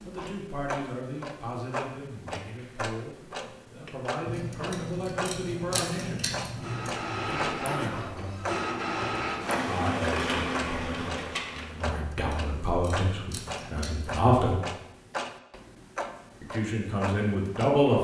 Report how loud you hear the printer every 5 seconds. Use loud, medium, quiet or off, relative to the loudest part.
off, loud, loud, off.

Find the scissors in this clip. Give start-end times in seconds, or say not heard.
4.2-7.0, 11.8-14.1.